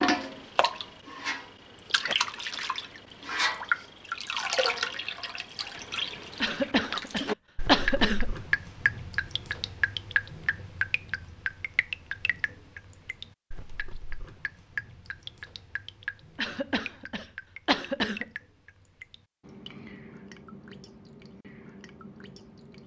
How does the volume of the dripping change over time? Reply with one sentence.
The volume of the dripping goes down.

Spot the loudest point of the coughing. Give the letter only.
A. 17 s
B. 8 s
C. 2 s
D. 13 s
B.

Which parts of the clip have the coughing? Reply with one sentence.
The coughing can be heard from 6.4 to 8.3 s and from 16.4 to 18.3 s.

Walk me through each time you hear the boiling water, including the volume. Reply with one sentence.
You can't hear the boiling water here.